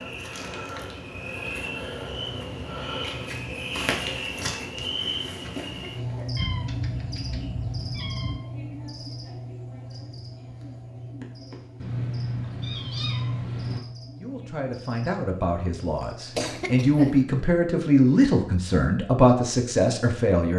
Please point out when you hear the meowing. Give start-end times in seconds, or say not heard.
6.3-8.4, 11.8-13.8.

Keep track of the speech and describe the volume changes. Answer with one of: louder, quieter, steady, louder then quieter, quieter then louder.
louder.